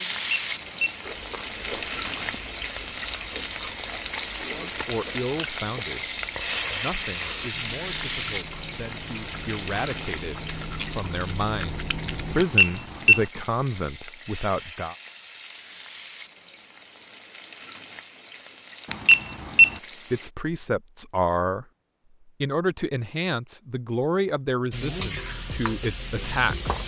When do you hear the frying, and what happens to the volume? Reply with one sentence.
You can hear the frying from 0.0 to 20.3 s, getting quieter; and briefly from 24.7 to 26.8 s.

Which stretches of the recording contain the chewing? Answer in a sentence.
The chewing can be heard from 1.0 to 12.4 s.